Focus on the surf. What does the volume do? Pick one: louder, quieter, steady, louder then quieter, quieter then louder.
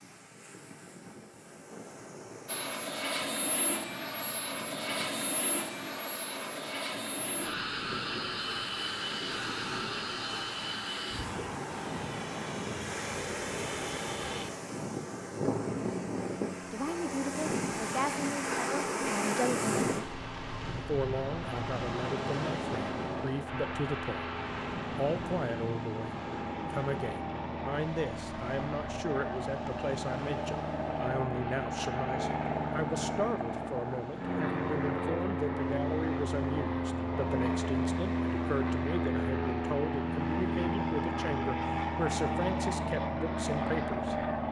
louder then quieter.